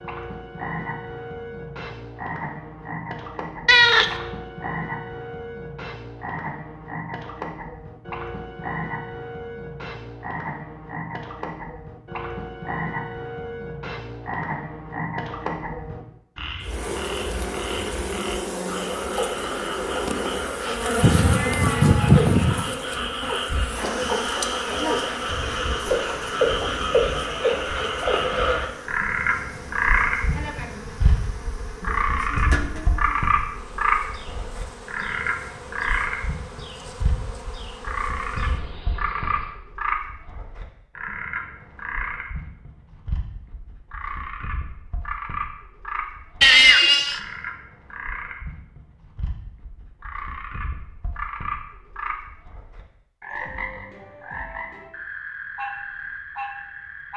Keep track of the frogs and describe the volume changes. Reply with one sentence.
The volume of the frogs goes up, then down.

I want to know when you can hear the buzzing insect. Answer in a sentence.
You can hear the buzzing insect from 16.6 to 39.5 s.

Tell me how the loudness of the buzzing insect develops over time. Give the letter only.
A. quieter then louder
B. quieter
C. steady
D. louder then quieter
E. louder
B.